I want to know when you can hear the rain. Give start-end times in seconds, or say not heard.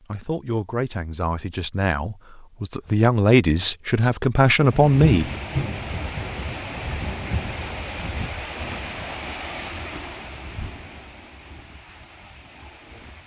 4.6-13.2.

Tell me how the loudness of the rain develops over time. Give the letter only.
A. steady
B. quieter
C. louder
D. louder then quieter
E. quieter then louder
B.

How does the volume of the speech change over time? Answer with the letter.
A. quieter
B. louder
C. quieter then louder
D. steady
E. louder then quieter
B.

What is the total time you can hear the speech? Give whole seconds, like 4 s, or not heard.
5 s.